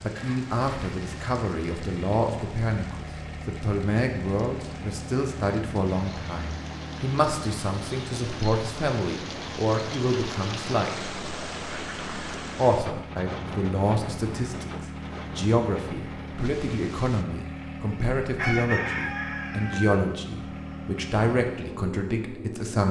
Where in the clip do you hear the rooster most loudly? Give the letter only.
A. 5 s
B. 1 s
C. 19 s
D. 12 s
C.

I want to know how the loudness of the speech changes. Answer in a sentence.
The loudness of the speech stays about the same.